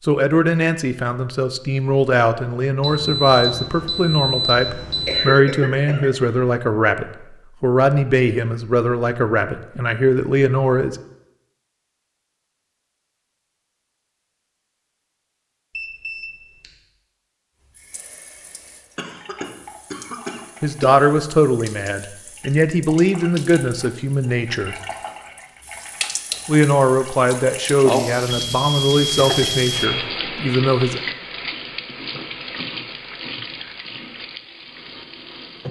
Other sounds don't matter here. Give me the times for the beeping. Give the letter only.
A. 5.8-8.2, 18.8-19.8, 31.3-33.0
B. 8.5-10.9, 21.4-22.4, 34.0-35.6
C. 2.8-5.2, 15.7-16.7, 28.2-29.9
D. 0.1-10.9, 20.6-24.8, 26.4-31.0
C.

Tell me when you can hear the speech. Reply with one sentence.
You can hear the speech from 0.1 to 10.9 s, from 20.6 to 24.8 s and from 26.4 to 31.0 s.